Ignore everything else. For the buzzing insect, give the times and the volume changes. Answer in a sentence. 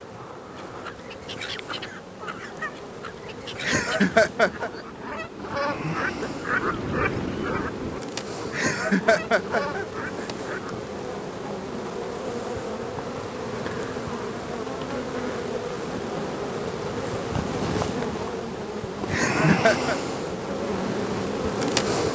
The buzzing insect can be heard from 0.0 to 22.0 s, getting louder.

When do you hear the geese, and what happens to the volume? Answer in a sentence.
The geese can be heard from 0.5 to 10.9 s, getting louder then quieter.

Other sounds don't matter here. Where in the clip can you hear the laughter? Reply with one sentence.
You can hear the laughter from 3.6 to 4.7 s, from 8.5 to 10.6 s and from 19.1 to 19.9 s.